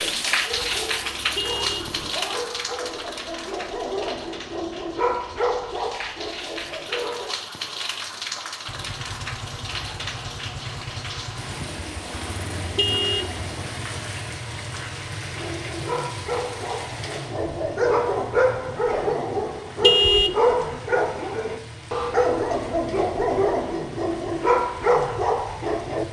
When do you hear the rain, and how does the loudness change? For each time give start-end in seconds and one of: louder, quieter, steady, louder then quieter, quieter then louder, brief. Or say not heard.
0.0-26.0 quieter.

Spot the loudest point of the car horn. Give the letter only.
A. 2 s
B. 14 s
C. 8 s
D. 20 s
D.